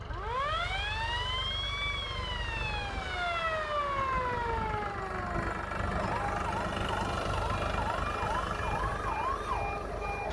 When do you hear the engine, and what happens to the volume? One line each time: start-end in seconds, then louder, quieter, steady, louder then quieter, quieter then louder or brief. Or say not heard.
0.0-10.2 louder.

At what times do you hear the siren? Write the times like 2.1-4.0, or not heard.
0.1-10.2.